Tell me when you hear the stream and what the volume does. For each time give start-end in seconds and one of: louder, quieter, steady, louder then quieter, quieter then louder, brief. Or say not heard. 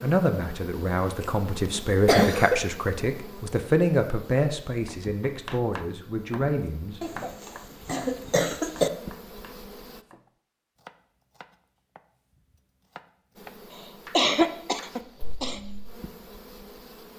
not heard.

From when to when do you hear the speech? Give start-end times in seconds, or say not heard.
0.0-7.2.